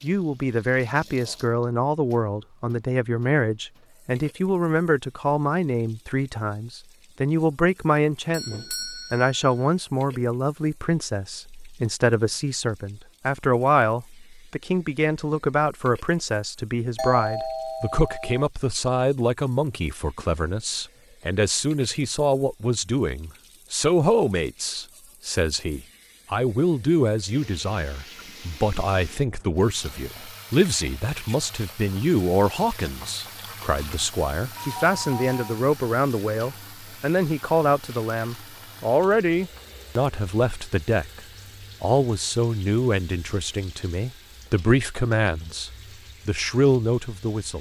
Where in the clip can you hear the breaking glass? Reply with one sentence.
The breaking glass can't be heard in this clip.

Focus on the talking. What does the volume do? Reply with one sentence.
The loudness of the talking stays about the same.